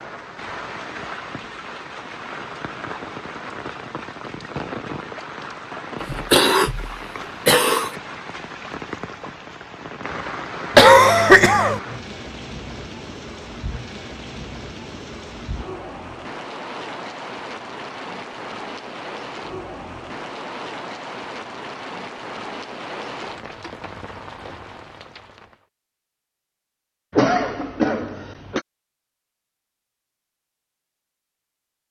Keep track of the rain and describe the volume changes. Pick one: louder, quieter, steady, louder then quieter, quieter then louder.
steady.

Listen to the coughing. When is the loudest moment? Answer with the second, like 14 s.
11 s.